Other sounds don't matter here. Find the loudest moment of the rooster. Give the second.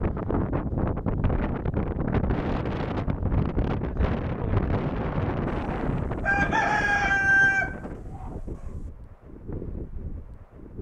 7 s.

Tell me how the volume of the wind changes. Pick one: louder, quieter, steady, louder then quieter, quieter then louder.
quieter.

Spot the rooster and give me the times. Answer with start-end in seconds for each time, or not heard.
5.5-8.3.